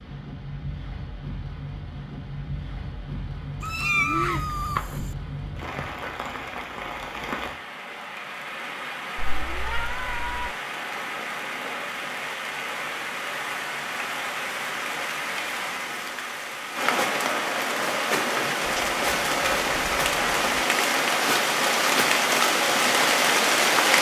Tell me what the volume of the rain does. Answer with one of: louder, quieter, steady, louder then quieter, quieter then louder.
louder.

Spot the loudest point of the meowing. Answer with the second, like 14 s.
4 s.